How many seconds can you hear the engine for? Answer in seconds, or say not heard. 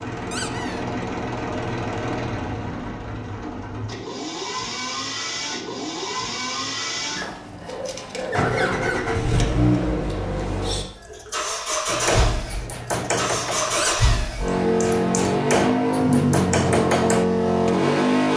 18 s.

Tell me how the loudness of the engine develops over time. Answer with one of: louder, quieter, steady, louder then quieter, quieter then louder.
louder.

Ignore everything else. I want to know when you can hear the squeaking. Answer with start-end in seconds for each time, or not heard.
0.3-0.8, 7.2-9.0, 13.8-14.3.